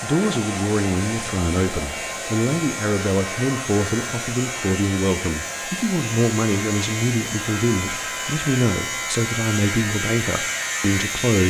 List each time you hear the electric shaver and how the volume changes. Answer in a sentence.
You can hear the electric shaver from 0.0 to 11.4 s, getting louder.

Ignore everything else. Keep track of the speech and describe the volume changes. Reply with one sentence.
The volume of the speech stays about the same.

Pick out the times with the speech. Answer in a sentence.
The speech can be heard from 0.0 to 11.4 s.